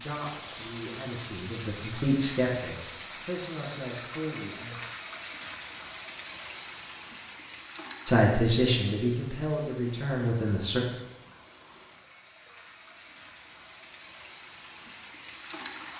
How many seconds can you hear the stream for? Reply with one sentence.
You can hear the stream for 16 seconds altogether.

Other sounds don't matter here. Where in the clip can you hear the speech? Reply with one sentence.
The speech can be heard from 0.0 to 4.9 s and from 8.1 to 10.8 s.